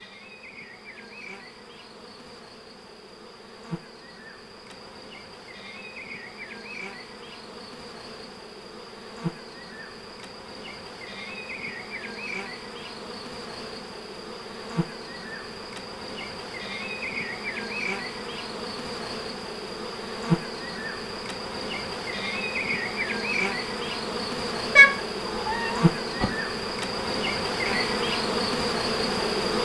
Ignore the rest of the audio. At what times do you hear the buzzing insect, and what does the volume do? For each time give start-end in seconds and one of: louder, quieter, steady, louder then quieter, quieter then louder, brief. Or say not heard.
0.0-29.6 louder.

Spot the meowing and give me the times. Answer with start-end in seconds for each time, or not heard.
24.8-26.2.